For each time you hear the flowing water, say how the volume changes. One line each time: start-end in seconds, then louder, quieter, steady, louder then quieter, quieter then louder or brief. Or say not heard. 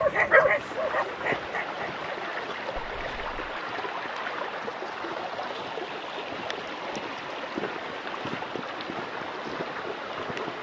0.0-10.5 steady.